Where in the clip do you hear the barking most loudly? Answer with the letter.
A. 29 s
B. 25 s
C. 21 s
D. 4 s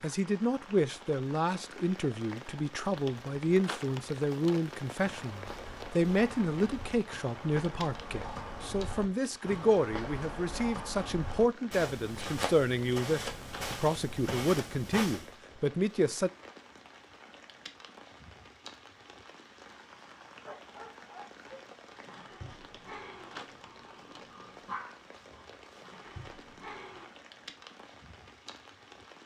B.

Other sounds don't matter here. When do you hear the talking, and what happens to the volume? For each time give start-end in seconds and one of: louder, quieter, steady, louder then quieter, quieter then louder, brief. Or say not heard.
0.0-16.3 steady.